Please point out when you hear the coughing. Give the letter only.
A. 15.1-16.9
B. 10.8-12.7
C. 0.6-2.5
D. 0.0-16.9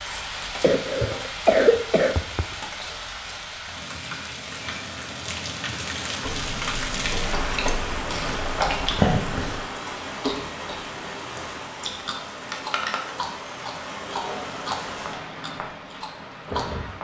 C.